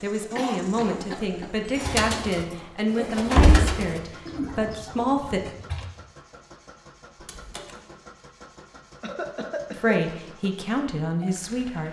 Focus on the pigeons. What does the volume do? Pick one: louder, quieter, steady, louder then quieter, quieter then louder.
louder then quieter.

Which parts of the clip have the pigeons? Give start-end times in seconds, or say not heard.
1.8-5.8.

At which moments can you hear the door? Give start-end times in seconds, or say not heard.
3.3-3.9, 7.2-7.8.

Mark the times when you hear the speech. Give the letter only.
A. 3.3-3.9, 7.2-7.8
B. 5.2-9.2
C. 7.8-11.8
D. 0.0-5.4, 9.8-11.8
D.